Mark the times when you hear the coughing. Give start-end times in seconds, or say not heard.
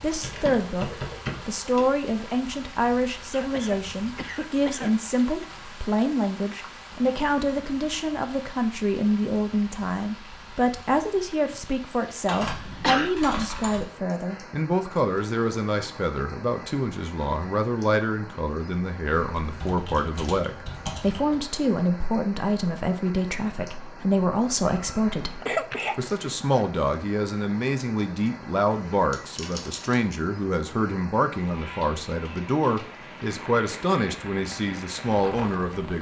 3.3-5.0, 12.4-13.2, 24.6-26.6.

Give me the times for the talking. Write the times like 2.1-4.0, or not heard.
0.0-35.9.